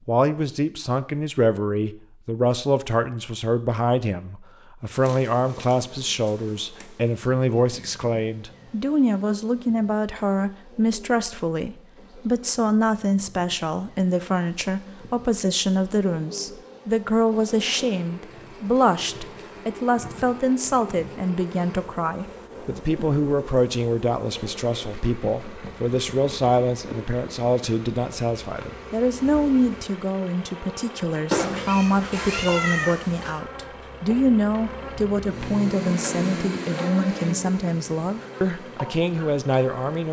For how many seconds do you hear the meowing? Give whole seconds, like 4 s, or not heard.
2 s.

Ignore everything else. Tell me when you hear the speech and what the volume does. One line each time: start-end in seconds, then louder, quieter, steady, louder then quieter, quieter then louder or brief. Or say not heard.
0.1-40.0 steady.